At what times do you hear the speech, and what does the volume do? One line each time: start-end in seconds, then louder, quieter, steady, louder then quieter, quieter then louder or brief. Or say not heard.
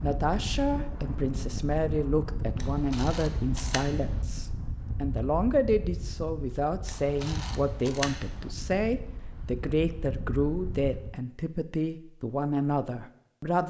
0.0-13.6 steady.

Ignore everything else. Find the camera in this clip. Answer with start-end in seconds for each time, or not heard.
2.5-4.2, 6.8-8.5.